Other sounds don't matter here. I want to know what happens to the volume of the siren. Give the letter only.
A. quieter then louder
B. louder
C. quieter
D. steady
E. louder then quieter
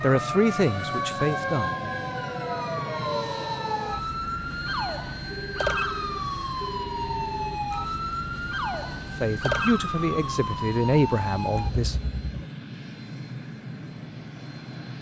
D.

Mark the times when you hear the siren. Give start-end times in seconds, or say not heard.
0.0-12.4.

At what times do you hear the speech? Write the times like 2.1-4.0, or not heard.
0.0-1.8, 9.2-11.9.